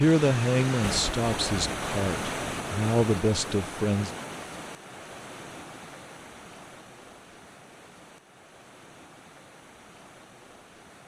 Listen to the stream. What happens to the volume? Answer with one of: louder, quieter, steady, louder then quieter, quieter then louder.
quieter.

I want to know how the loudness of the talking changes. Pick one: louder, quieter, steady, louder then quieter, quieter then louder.
quieter then louder.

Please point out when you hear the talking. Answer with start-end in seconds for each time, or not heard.
0.0-4.1.